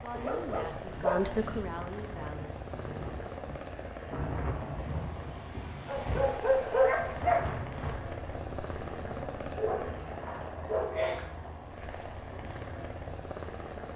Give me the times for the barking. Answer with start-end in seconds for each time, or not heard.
0.1-1.6, 5.8-7.5, 9.6-11.2.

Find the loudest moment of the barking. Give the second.
7 s.